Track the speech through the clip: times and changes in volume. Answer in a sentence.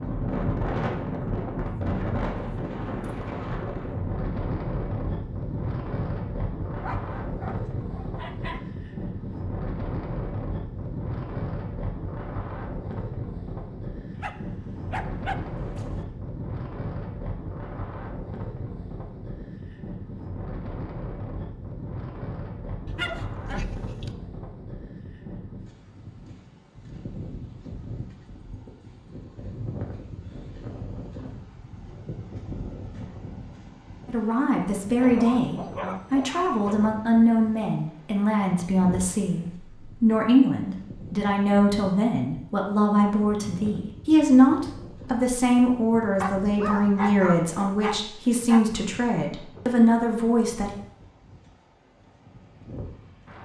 The speech can be heard from 34.0 to 50.7 s, at a steady volume.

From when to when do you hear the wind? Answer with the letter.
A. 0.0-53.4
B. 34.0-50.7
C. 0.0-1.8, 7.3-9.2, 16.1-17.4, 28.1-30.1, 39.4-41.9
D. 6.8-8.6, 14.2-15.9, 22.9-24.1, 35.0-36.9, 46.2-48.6
A.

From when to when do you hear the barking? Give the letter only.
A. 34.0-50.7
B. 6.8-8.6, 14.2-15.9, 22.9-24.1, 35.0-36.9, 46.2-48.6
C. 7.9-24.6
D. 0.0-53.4
B.